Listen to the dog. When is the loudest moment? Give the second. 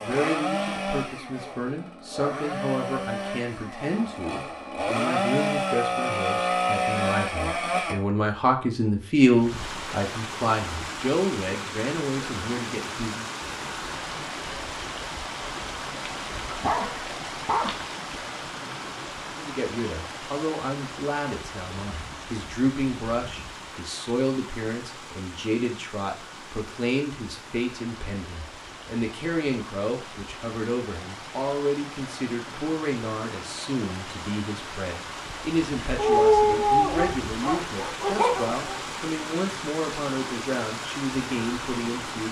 36 s.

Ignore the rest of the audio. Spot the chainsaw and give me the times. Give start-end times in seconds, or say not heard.
0.0-8.0.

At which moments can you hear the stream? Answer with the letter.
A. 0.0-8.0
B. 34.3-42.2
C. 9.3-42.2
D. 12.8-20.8
C.